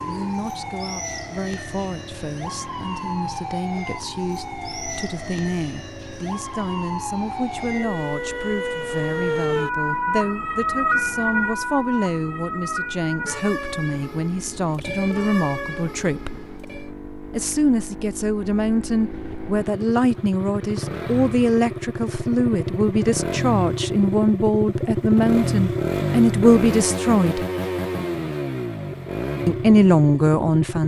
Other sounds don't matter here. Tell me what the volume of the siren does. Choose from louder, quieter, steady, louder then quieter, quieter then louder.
louder then quieter.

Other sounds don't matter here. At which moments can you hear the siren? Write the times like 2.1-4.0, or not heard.
0.0-16.9.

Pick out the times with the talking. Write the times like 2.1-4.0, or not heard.
0.1-16.4, 17.3-27.4, 29.4-30.8.